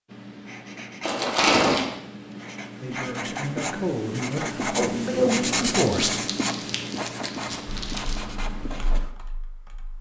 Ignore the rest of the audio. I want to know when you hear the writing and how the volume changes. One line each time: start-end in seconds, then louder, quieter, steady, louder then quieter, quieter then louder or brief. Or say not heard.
0.1-9.1 louder then quieter.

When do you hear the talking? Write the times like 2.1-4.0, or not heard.
2.8-6.1.